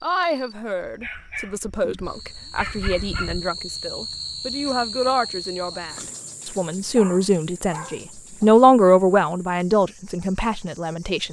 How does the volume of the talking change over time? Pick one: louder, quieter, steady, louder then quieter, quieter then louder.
louder.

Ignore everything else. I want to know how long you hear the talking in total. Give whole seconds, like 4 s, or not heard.
11 s.